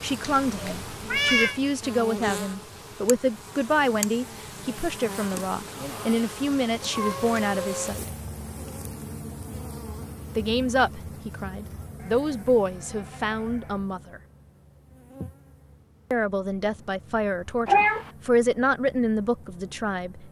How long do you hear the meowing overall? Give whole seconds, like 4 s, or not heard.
3 s.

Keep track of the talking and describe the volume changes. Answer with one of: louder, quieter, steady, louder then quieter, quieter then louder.
steady.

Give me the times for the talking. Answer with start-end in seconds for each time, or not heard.
0.0-8.1, 10.3-14.2, 16.1-20.2.